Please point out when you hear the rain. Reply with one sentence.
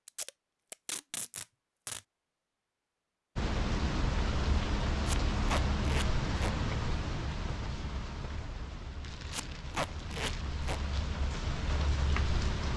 The rain can be heard from 3.4 to 12.7 s.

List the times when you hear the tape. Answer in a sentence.
The tape can be heard from 0.1 to 2.0 s, from 5.0 to 6.5 s and from 9.3 to 10.8 s.